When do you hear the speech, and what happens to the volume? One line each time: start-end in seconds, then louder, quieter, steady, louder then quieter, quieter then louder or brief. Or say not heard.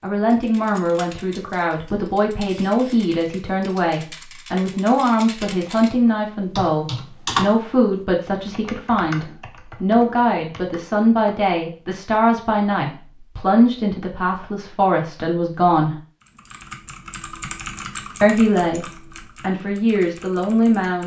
0.0-15.9 steady
18.2-21.0 brief.